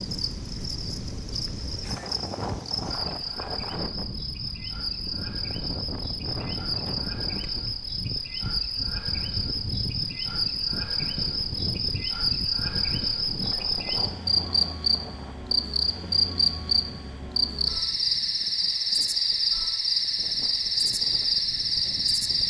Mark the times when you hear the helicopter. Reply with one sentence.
The helicopter can't be heard in this clip.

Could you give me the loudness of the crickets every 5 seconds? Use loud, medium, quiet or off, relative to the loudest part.
medium, medium, loud, loud, loud.